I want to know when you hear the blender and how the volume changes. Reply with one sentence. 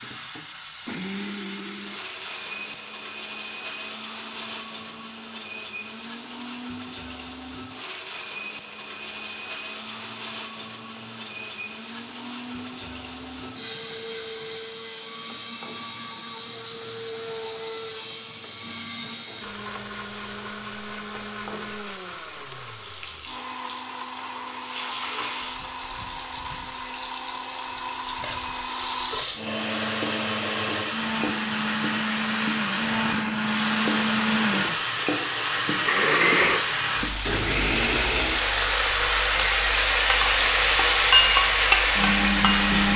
The blender can be heard from 0.0 to 42.9 s, getting louder.